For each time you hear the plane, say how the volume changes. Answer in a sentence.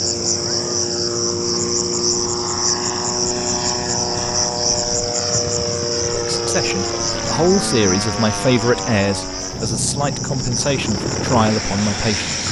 The plane can be heard from 0.0 to 12.4 s, at a steady volume.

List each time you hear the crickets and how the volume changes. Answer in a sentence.
The crickets can be heard from 0.0 to 12.4 s, getting quieter.